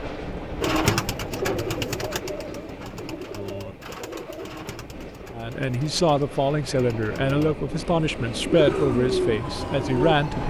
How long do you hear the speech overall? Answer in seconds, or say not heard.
5 s.